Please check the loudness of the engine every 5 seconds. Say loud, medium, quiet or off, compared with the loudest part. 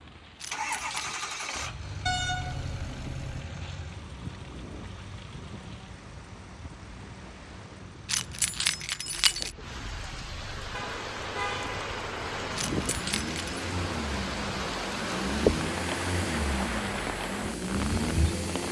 medium, quiet, medium, loud.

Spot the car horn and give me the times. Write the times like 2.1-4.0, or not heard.
2.0-3.5, 10.7-11.8.